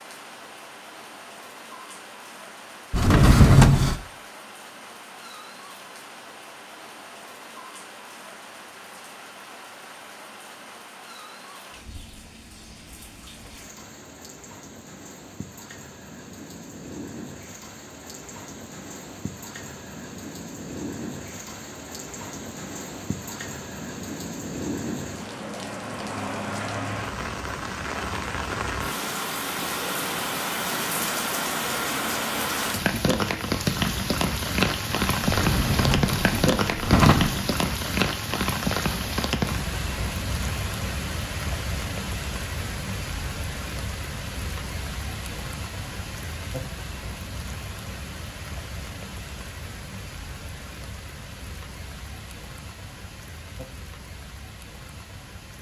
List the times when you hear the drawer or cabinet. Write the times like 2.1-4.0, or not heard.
2.9-4.0, 35.2-37.4.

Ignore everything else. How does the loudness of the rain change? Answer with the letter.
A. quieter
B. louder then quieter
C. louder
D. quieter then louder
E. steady
B.